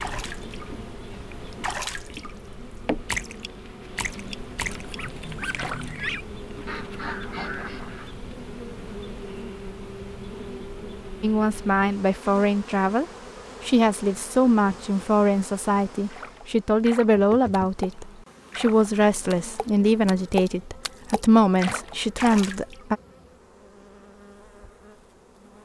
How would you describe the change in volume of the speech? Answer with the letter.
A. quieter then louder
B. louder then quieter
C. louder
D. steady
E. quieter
D.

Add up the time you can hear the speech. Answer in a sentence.
The speech can be heard for 12 seconds in total.